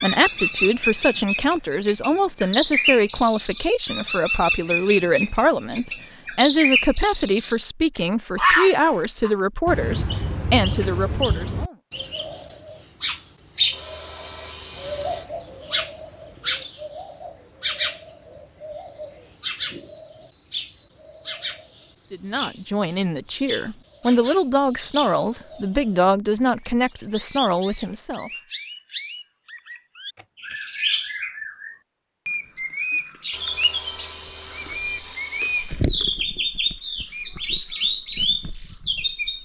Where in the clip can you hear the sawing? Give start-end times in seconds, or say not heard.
13.7-15.3, 33.3-35.9.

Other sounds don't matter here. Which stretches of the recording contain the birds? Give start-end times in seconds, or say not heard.
0.0-7.6, 8.3-39.3.